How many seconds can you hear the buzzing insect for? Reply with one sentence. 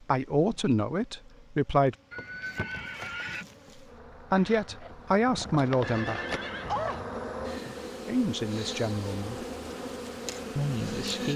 The buzzing insect can be heard for 11 seconds in total.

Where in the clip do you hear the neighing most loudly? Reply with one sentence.
The loudest moment of the neighing is at 7 seconds.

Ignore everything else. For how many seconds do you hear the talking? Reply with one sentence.
The talking can be heard for 6 seconds in total.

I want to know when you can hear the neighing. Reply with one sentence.
You can hear the neighing from 2.1 to 3.5 s and from 5.8 to 7.0 s.